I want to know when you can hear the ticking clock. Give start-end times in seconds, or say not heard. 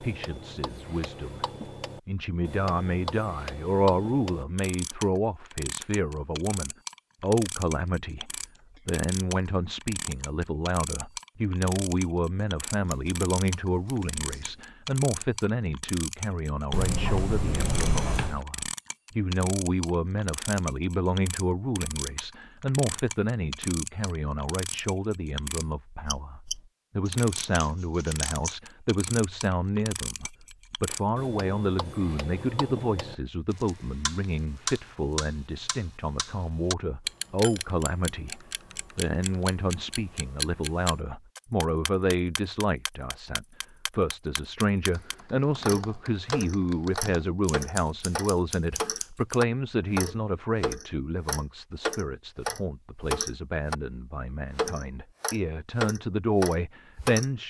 0.0-53.8, 54.5-57.3.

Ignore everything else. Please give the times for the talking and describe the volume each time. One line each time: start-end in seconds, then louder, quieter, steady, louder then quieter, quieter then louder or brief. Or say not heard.
0.0-1.4 brief
2.0-57.4 steady.